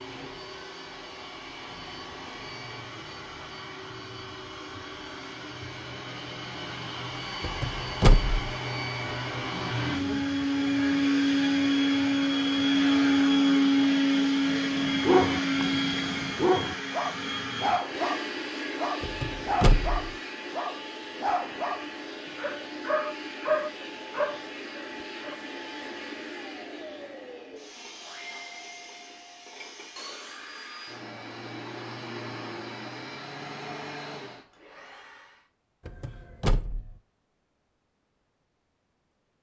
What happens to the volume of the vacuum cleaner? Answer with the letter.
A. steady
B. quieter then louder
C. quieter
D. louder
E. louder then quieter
E.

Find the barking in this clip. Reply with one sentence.
The barking can be heard from 14.6 to 25.4 s.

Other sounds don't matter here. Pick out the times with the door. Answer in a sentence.
The door can be heard from 7.4 to 8.4 s, from 19.0 to 20.1 s and from 35.9 to 37.0 s.